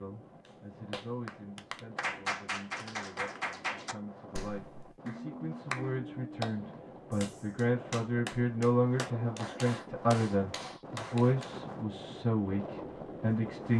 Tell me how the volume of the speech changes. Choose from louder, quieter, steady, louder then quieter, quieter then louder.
louder.